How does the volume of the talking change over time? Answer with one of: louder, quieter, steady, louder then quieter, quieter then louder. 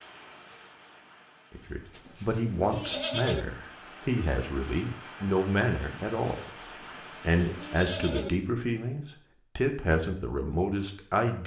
steady.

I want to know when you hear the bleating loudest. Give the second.
3 s.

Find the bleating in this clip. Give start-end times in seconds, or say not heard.
1.9-3.5, 6.8-8.3.